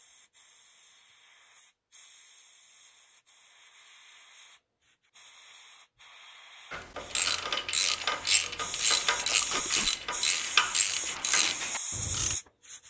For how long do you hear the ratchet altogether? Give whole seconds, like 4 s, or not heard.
6 s.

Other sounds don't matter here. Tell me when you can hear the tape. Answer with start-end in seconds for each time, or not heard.
9.4-9.9.